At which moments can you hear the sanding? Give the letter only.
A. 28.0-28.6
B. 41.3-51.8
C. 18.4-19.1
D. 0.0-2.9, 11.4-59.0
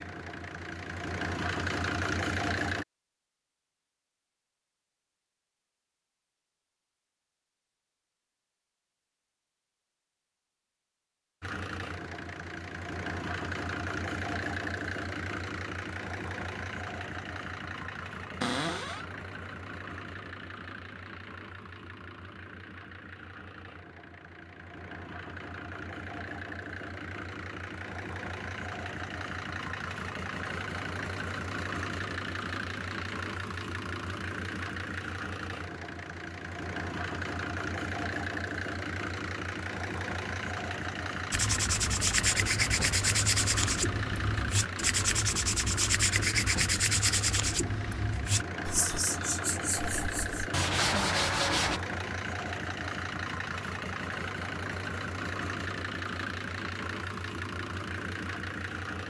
B.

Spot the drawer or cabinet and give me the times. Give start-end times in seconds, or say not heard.
18.4-19.1.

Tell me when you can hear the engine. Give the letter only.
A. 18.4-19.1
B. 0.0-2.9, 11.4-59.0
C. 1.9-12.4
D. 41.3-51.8
B.